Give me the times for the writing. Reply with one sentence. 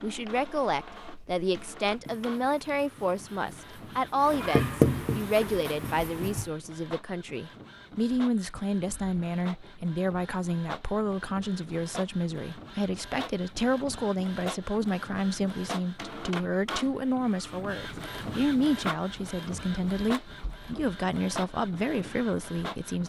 The writing can be heard from 0.1 to 6.5 s.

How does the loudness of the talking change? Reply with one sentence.
The volume of the talking stays about the same.